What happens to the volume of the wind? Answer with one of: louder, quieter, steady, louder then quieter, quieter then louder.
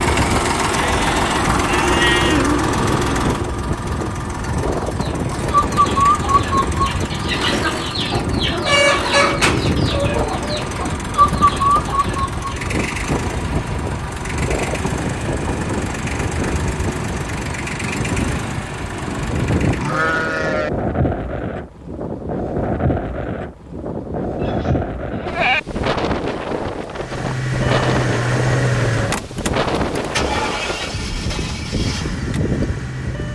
steady.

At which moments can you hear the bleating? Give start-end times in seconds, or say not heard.
0.7-2.4, 19.7-20.7, 24.4-25.6.